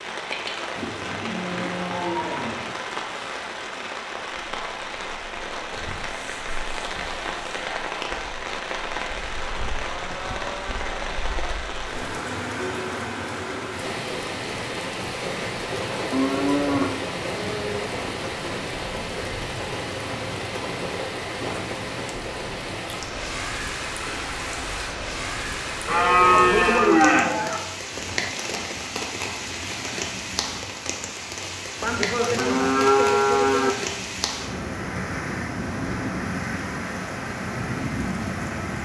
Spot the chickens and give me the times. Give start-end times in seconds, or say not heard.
not heard.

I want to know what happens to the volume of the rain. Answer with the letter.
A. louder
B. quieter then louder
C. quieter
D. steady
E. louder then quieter
D.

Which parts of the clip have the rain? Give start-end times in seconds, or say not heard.
0.0-38.8.